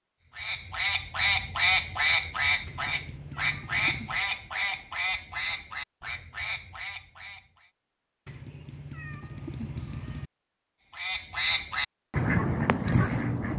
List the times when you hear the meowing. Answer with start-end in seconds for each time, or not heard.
2.6-4.2, 8.2-10.3.